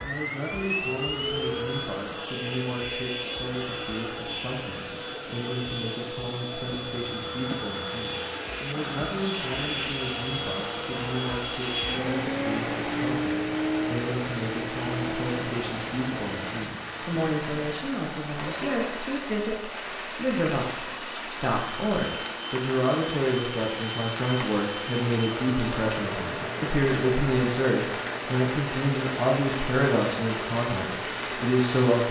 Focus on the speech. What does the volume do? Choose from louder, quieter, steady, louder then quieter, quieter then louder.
louder.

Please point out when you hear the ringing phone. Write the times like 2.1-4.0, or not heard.
not heard.